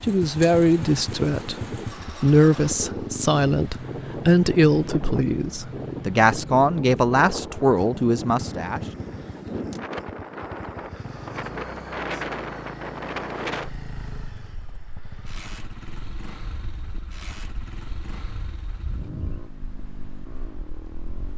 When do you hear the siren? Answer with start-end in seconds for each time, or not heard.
not heard.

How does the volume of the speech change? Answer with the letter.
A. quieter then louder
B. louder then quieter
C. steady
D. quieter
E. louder
C.